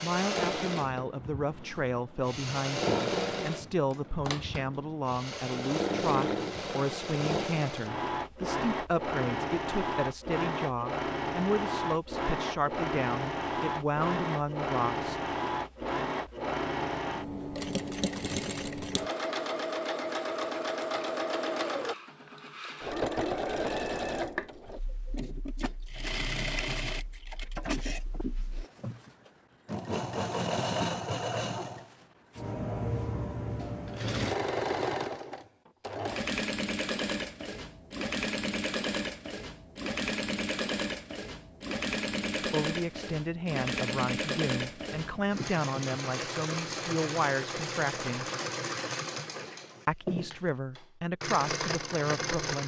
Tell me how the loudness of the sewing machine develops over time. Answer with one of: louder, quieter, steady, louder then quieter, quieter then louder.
steady.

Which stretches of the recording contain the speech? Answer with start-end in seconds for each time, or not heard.
0.0-15.3, 42.4-48.2, 49.9-52.6.